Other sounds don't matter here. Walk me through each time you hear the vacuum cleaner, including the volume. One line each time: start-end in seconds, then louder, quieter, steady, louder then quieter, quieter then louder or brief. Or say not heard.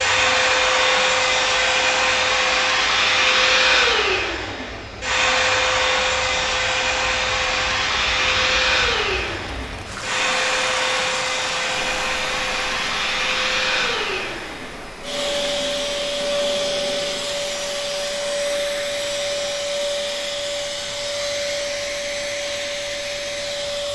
0.0-23.9 quieter.